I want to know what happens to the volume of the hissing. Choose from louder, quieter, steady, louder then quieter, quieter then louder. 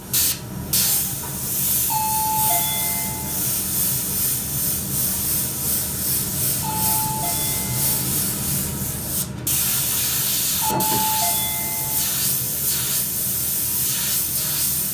steady.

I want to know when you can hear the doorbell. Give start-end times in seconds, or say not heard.
1.9-3.4, 6.6-8.0, 10.6-12.1.